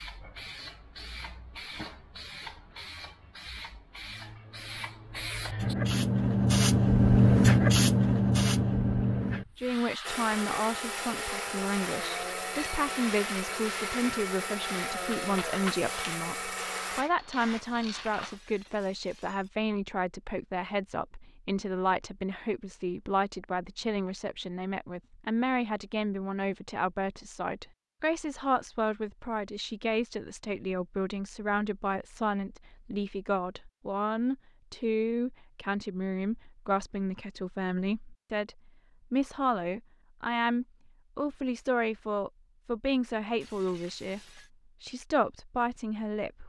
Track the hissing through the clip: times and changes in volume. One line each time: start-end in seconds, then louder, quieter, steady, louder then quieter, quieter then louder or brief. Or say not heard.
0.0-18.4 louder then quieter.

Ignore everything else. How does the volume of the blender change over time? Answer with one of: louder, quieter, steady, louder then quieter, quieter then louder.
steady.